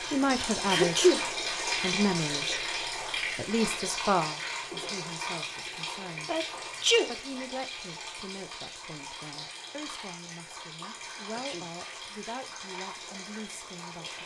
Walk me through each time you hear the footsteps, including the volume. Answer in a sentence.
You can't hear the footsteps here.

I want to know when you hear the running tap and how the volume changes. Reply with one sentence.
The running tap can be heard from 0.0 to 14.2 s, getting quieter.